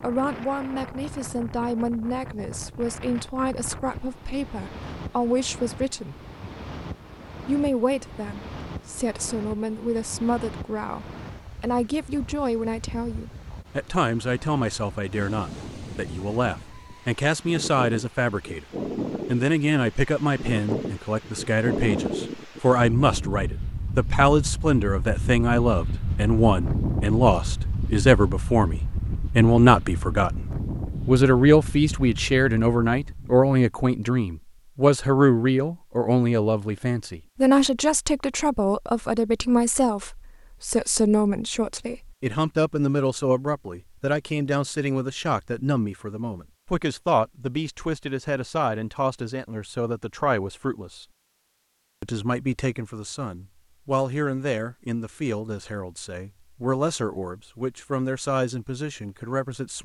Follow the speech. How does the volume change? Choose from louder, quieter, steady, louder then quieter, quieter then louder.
louder then quieter.